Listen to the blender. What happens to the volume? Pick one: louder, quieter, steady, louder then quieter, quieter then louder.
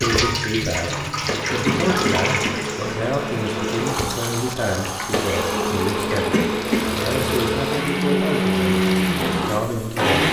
louder.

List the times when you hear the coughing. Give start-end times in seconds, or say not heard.
1.4-2.6, 6.2-6.8.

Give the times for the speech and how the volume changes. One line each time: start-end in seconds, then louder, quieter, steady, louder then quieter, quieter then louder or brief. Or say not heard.
0.0-10.2 steady.